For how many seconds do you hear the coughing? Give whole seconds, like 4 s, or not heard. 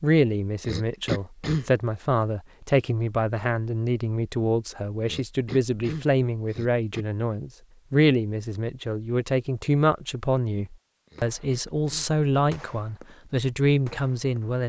4 s.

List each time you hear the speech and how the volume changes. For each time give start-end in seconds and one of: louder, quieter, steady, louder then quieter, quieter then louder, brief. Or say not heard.
0.0-14.6 steady.